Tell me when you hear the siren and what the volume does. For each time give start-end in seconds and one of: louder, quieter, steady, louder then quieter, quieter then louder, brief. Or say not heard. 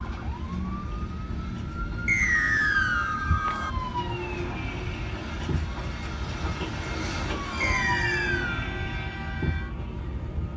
0.0-10.5 steady.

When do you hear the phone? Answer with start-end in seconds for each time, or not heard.
2.2-3.7, 7.5-8.4.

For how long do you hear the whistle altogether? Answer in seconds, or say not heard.
2 s.